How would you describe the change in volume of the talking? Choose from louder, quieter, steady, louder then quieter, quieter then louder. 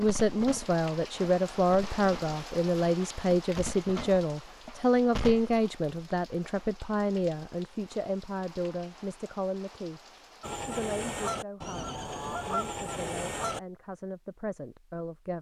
quieter.